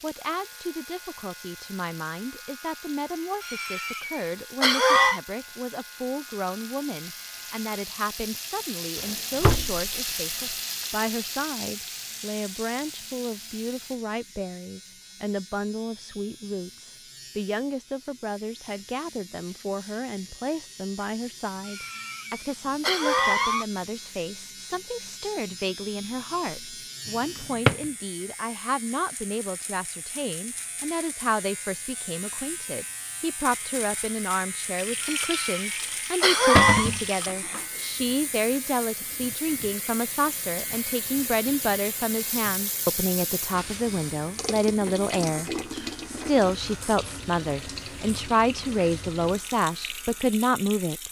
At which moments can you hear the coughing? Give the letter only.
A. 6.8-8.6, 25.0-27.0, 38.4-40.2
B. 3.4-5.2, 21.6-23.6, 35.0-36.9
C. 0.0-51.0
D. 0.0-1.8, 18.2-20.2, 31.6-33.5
B.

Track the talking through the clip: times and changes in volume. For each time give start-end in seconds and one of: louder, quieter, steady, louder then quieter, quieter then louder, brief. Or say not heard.
0.0-51.0 louder.